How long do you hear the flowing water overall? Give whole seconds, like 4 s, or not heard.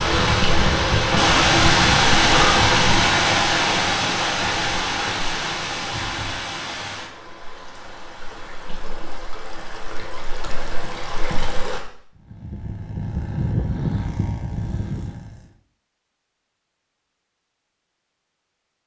12 s.